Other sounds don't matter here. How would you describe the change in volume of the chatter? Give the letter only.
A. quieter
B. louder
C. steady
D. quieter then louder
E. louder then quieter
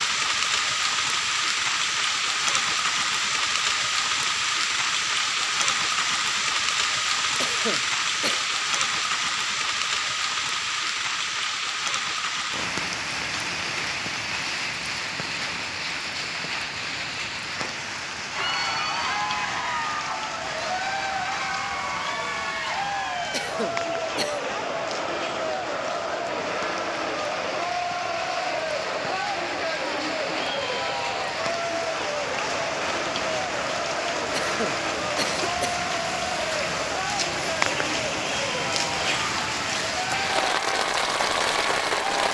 C.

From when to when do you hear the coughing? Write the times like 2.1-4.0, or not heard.
7.3-8.4, 23.3-24.4, 34.3-35.9.